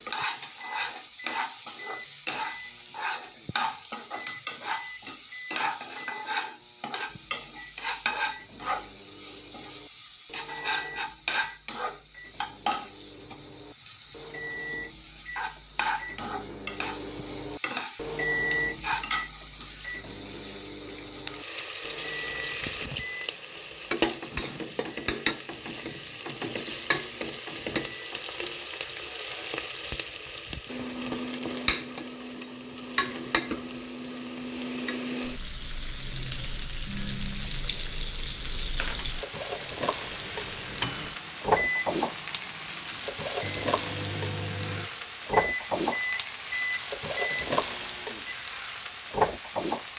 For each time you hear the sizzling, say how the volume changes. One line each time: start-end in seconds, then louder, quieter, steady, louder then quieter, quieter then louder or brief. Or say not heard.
0.0-49.9 steady.